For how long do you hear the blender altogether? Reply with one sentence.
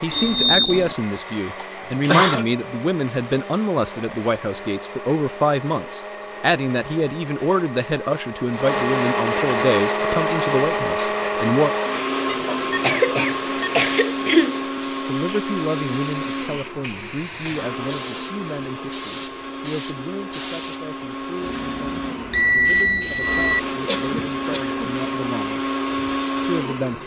The blender can be heard for 27 seconds in total.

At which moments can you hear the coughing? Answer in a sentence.
You can hear the coughing from 1.6 to 2.5 s, from 12.4 to 14.6 s and from 23.9 to 24.9 s.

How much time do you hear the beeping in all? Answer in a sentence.
The beeping can be heard for 4 seconds in total.